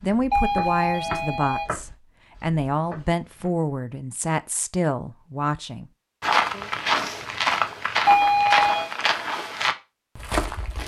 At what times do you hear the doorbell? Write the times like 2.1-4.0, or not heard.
0.3-1.7, 8.1-8.9.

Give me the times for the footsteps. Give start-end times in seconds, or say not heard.
0.0-3.5, 6.2-10.8.